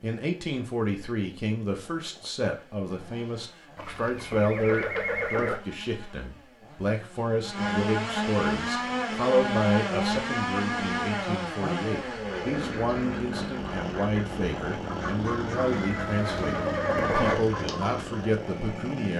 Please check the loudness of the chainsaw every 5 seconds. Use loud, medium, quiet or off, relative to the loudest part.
quiet, loud, loud, loud.